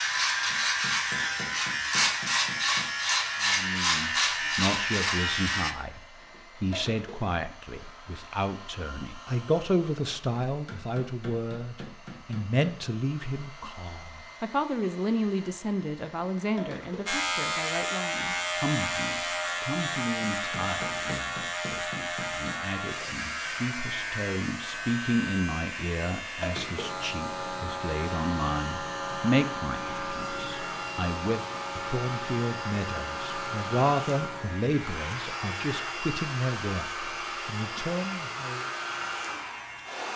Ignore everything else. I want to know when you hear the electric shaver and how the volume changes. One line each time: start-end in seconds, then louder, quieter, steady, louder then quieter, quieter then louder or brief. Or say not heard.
0.0-5.8 steady
17.1-40.1 quieter.